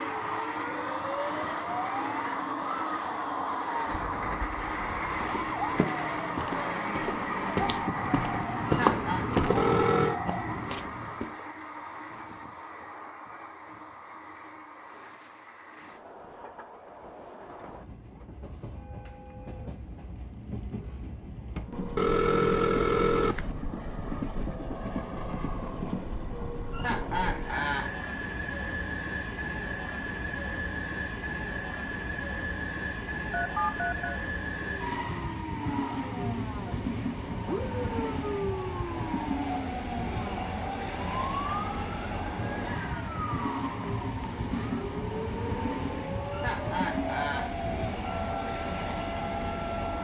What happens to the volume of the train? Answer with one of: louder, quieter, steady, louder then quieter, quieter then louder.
quieter then louder.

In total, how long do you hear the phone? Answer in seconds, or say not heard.
3 s.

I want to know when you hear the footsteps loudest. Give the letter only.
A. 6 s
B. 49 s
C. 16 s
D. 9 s
D.